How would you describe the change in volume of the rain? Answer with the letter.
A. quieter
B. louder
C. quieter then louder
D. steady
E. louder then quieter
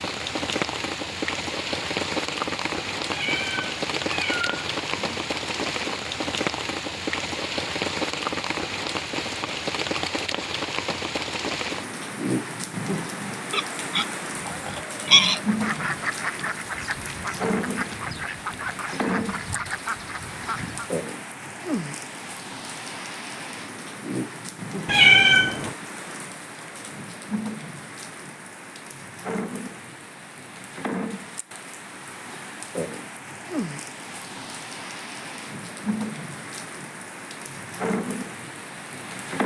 A.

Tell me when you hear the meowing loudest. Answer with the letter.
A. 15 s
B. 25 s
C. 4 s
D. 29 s
B.